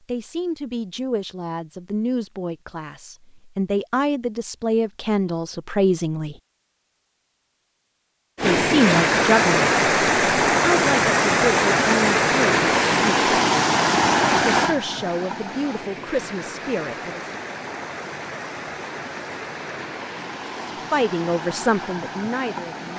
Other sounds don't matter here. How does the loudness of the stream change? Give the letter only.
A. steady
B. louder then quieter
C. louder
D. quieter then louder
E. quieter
E.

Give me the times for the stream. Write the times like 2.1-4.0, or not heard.
8.3-22.9.